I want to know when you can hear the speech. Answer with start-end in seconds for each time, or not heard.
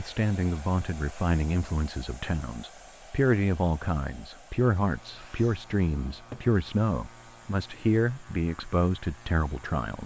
0.0-10.0.